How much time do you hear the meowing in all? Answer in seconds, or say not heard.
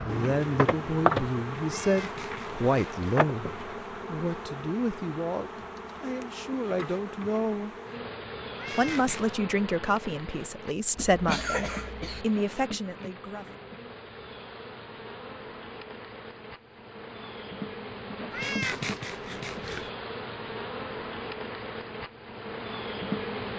4 s.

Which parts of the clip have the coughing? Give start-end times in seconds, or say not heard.
10.9-12.2.